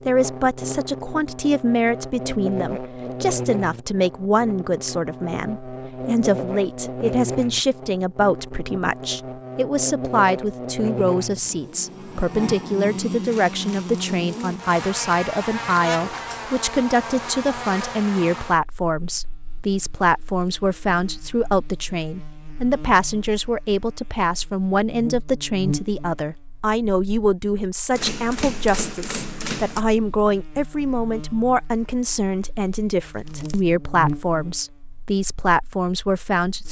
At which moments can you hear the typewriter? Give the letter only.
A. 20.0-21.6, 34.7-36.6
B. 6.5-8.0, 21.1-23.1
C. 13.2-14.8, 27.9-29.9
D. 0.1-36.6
C.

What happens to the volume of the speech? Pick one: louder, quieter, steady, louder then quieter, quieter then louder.
steady.